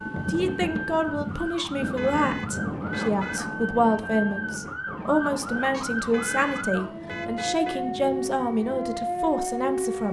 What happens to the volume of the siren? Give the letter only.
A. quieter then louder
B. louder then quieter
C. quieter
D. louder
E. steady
D.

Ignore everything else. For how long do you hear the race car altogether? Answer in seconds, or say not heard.
not heard.